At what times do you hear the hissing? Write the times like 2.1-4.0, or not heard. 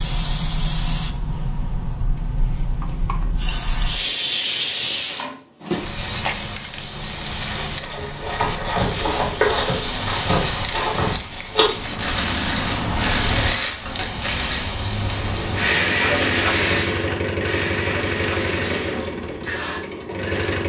0.0-20.6.